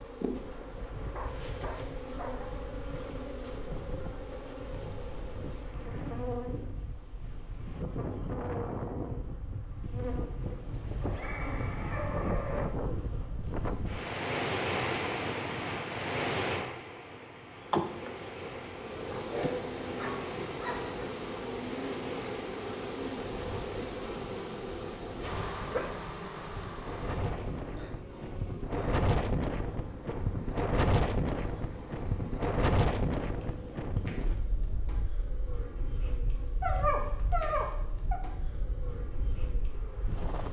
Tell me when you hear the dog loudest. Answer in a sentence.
The volume of the dog peaks at 37 seconds.